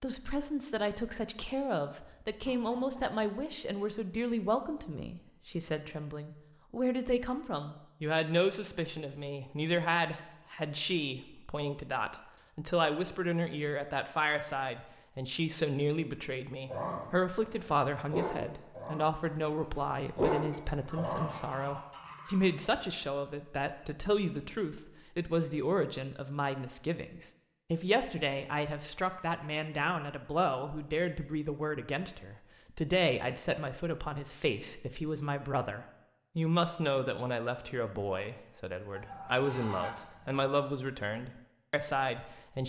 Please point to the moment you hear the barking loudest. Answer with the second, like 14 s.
20 s.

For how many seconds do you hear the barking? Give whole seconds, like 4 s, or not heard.
5 s.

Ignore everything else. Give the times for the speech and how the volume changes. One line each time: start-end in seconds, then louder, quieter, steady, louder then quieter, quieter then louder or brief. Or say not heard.
0.0-42.6 steady.